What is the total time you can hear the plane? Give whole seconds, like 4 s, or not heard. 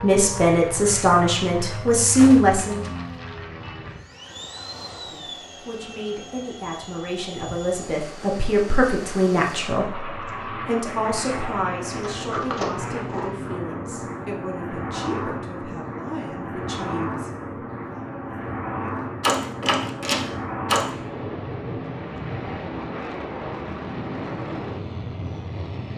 26 s.